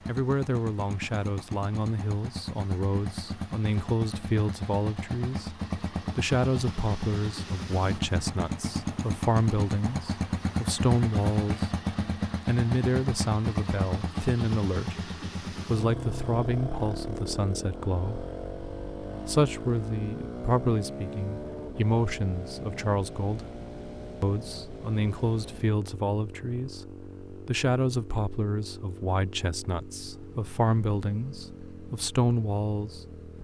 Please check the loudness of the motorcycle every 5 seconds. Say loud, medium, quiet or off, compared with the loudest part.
medium, loud, loud, medium, medium, quiet, quiet.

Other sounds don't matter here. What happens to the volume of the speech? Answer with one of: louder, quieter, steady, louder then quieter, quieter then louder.
steady.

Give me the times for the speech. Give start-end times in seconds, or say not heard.
0.1-11.8, 12.4-18.2, 19.2-23.4, 24.2-33.1.